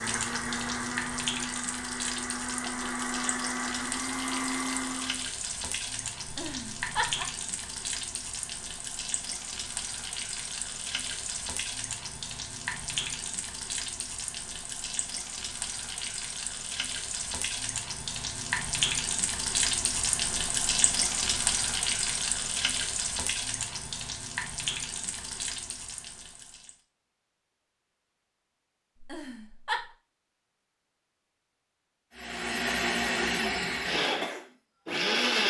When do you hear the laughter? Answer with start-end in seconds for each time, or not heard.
6.2-7.2, 28.9-29.9.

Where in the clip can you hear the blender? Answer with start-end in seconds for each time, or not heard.
0.0-5.3, 32.1-35.4.